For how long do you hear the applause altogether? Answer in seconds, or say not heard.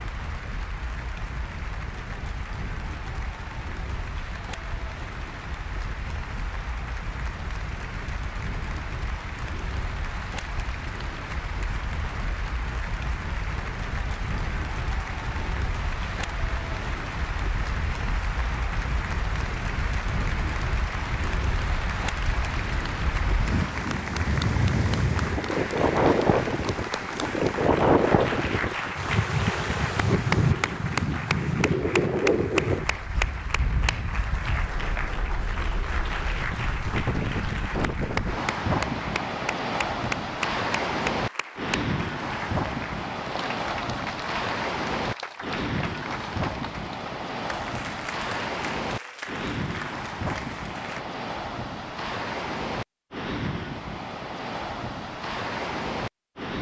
51 s.